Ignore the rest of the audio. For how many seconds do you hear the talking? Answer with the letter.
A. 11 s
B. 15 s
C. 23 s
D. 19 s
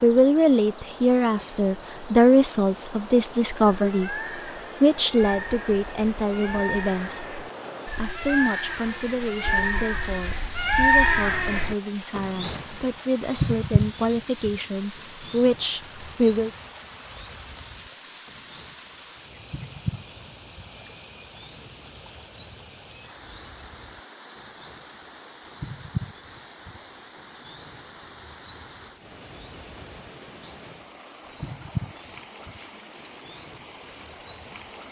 B.